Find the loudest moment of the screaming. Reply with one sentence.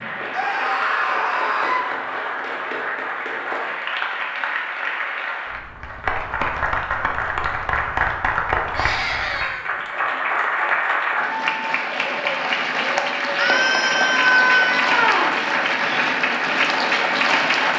The volume of the screaming peaks at 14 seconds.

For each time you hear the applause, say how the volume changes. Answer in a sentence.
You can hear the applause from 0.0 to 17.7 s, getting louder.